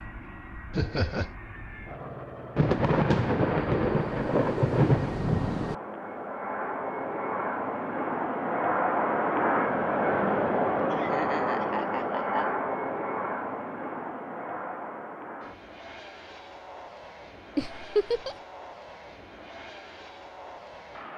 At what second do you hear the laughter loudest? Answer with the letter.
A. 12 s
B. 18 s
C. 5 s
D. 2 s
B.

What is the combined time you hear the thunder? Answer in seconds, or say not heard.
3 s.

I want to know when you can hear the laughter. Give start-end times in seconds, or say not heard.
0.7-1.3, 10.9-12.5, 17.6-18.4.